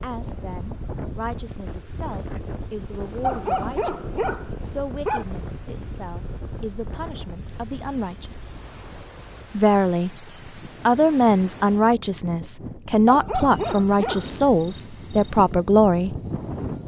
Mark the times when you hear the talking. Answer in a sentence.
You can hear the talking from 0.0 to 8.6 s, from 9.5 to 10.1 s and from 10.8 to 16.1 s.